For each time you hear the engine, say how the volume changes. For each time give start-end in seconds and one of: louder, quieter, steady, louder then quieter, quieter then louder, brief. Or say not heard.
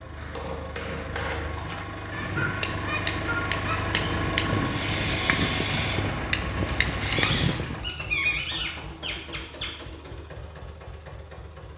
0.0-11.7 louder then quieter.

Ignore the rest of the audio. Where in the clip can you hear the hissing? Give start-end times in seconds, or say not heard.
4.6-7.7.